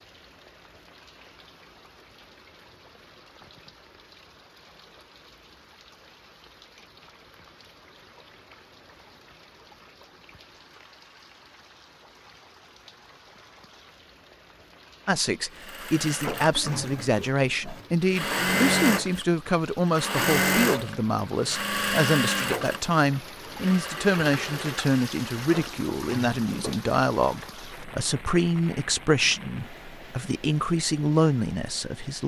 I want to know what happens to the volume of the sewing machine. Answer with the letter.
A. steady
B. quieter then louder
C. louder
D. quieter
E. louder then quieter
E.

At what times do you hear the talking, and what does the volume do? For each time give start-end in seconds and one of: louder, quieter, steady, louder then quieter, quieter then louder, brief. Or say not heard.
15.1-32.2 steady.